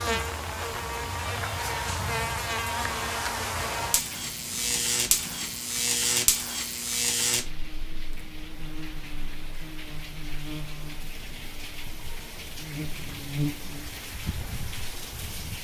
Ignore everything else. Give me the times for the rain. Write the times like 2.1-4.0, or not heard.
0.0-15.5.